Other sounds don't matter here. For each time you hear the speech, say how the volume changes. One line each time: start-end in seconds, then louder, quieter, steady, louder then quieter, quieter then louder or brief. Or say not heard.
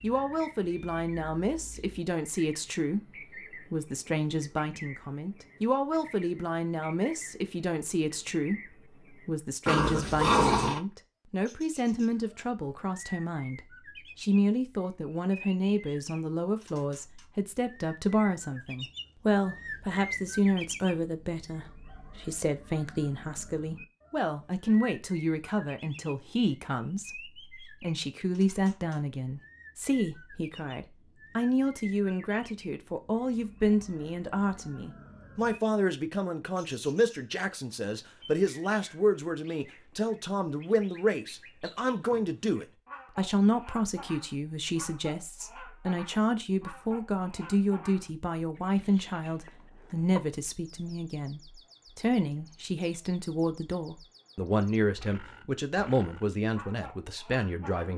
0.0-57.9 steady.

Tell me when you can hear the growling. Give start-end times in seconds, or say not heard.
9.7-10.8.